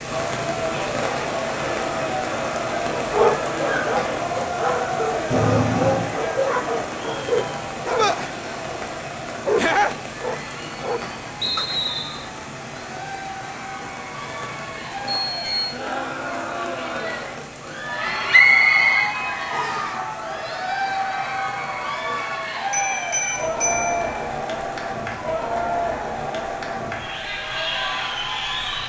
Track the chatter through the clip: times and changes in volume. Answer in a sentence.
You can hear the chatter from 0.0 to 28.8 s, getting quieter then louder.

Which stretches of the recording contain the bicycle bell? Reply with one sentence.
The bicycle bell can be heard from 5.3 to 6.2 s, from 15.2 to 15.8 s and from 22.7 to 24.2 s.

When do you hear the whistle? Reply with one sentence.
The whistle can be heard from 11.4 to 12.2 s and from 18.3 to 19.9 s.